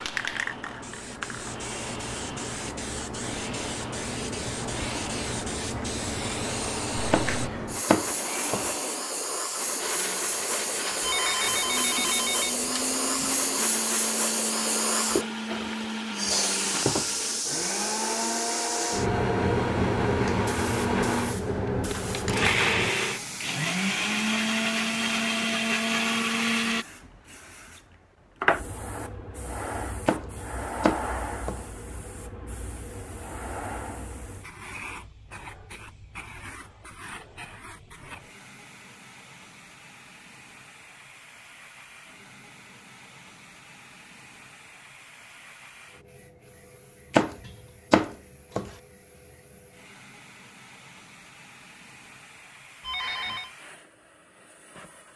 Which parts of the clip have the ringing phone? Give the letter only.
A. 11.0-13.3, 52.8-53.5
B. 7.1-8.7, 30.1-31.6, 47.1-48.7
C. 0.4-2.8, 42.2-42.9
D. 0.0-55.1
A.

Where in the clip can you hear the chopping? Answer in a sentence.
You can hear the chopping from 7.1 to 8.7 s, from 30.1 to 31.6 s and from 47.1 to 48.7 s.